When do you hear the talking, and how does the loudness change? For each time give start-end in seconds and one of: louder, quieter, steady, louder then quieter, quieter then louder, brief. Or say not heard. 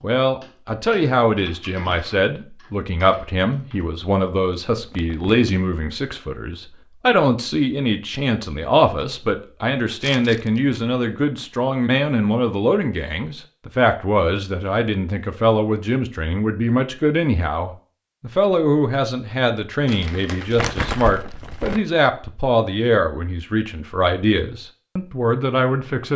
0.0-26.1 steady.